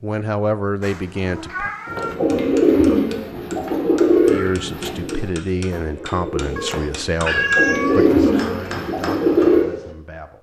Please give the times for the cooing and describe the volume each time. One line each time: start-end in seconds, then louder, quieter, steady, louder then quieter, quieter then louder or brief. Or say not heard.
1.9-9.7 quieter then louder.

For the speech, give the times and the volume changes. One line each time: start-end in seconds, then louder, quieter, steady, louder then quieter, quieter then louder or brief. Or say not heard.
0.0-1.7 brief
4.2-10.3 quieter.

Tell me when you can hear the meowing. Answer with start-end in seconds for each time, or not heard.
0.8-2.1, 6.5-8.5.